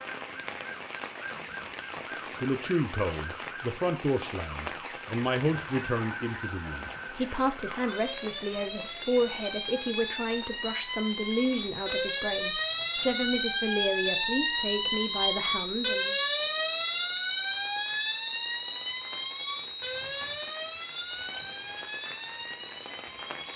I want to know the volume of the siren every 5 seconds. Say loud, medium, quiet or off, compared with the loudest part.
quiet, medium, loud, loud, medium.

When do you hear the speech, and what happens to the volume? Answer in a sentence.
The speech can be heard from 2.4 to 16.1 s, at a steady volume.